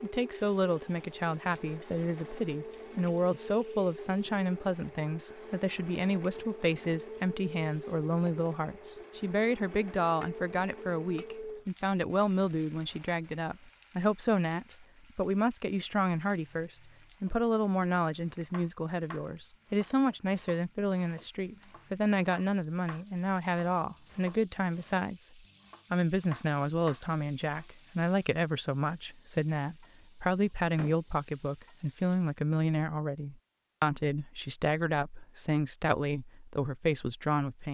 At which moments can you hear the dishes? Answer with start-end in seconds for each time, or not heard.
not heard.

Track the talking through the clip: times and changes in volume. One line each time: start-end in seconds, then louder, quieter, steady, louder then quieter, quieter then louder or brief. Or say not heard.
0.0-37.6 steady.